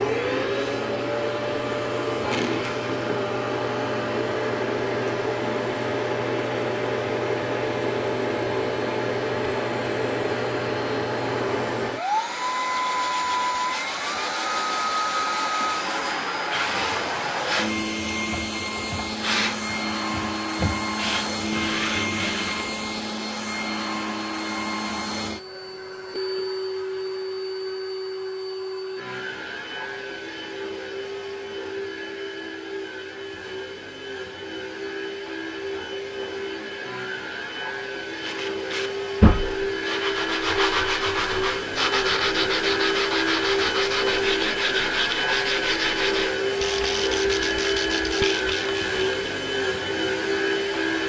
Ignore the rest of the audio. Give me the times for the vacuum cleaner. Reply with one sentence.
You can hear the vacuum cleaner from 0.0 to 51.0 s.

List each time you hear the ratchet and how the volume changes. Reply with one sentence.
You can't hear the ratchet here.